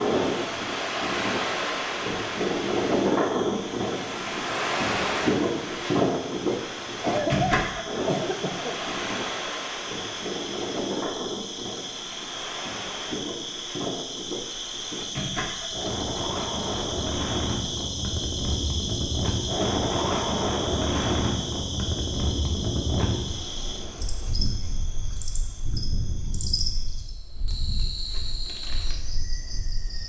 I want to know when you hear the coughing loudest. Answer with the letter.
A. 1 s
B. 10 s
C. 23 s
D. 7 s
D.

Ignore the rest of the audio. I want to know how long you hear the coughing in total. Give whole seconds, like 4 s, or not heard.
2 s.